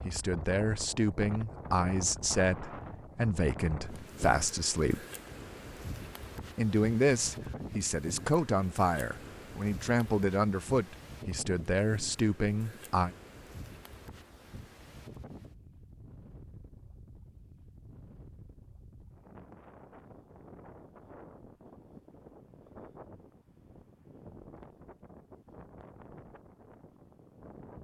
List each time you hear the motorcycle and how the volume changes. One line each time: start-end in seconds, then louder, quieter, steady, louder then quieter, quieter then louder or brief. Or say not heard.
not heard.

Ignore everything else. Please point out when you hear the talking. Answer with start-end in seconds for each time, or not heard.
0.1-5.0, 6.5-13.2.